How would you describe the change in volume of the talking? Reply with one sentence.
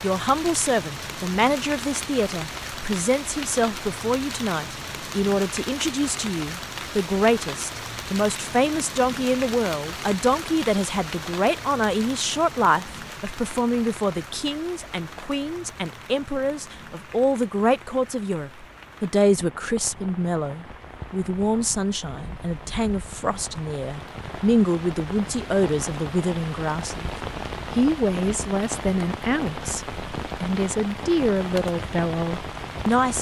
The loudness of the talking stays about the same.